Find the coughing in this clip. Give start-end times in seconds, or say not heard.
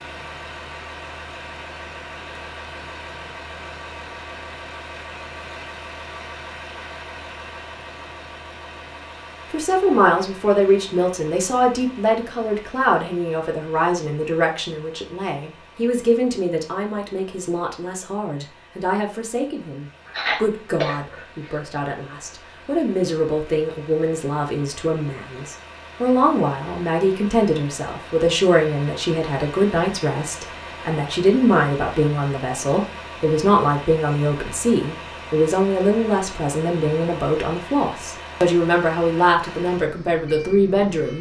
20.1-21.6.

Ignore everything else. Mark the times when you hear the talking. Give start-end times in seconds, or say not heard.
9.5-41.1.